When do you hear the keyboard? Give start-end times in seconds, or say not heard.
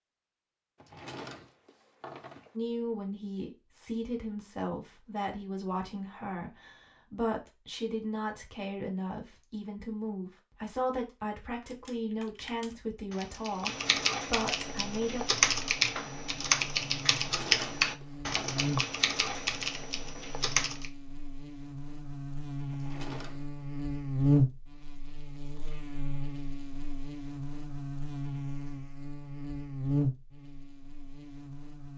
11.7-20.9.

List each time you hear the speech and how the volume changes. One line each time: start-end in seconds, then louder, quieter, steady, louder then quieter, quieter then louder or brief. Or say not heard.
2.5-15.3 steady.